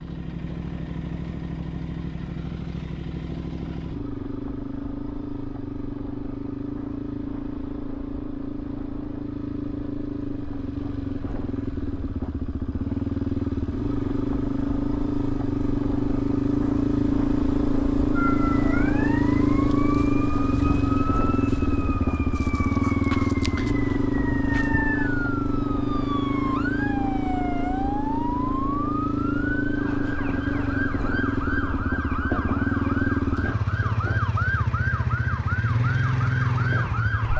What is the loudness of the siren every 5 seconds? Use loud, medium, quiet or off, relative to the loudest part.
off, off, off, loud, loud, loud, loud, loud.